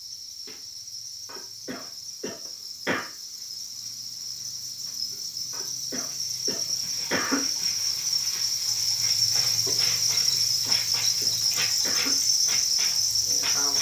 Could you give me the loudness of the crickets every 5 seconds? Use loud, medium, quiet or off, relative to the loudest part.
quiet, loud, loud.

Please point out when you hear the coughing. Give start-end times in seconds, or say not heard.
1.2-3.0, 5.5-7.5, 10.2-12.2.